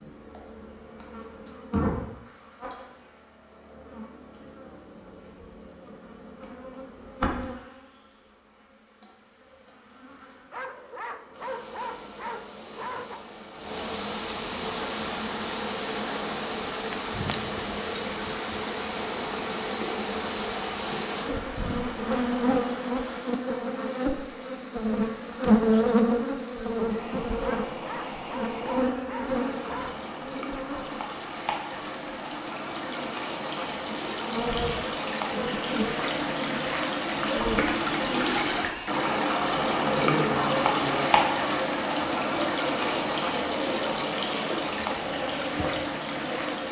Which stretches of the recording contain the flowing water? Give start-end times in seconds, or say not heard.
14.6-46.6.